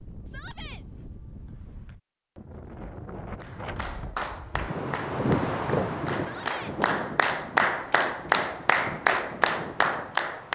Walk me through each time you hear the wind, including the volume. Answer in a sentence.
The wind can be heard from 0.0 to 10.4 s, getting louder then quieter.